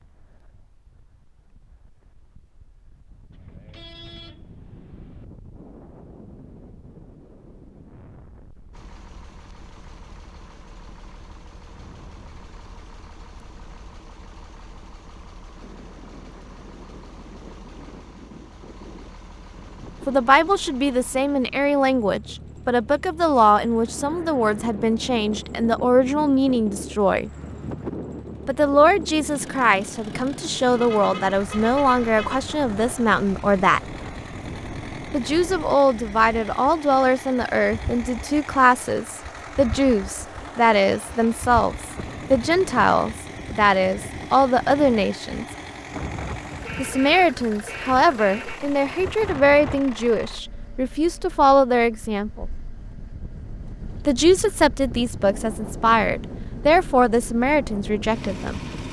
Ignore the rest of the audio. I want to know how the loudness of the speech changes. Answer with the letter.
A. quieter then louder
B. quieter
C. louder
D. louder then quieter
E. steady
E.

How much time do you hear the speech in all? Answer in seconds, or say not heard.
33 s.